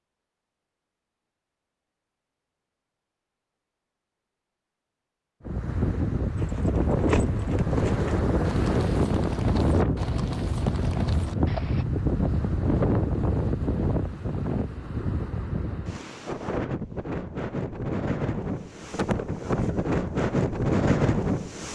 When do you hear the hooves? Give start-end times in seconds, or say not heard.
6.3-11.8.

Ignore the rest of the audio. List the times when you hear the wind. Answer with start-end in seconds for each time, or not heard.
5.5-21.7.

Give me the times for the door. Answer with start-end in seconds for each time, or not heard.
not heard.